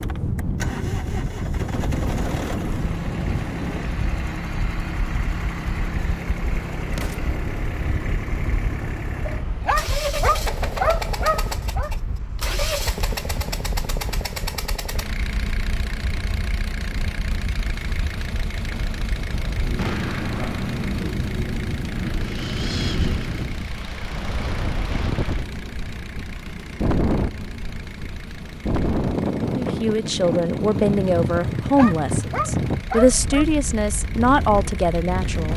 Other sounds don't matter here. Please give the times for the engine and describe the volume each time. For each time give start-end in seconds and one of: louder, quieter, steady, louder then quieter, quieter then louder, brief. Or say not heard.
0.0-35.5 quieter.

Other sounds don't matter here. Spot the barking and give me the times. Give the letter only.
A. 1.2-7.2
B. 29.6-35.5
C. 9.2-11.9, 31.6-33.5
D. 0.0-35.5
C.